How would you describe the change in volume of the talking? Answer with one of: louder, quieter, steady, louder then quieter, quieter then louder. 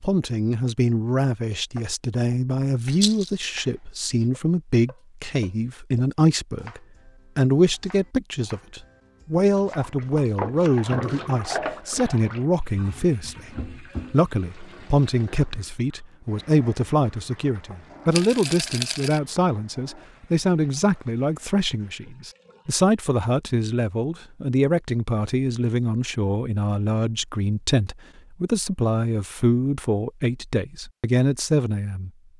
steady.